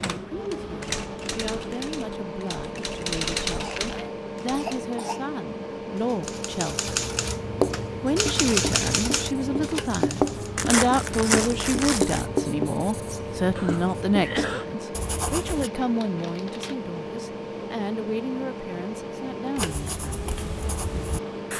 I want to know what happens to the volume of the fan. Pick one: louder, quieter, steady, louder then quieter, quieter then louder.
steady.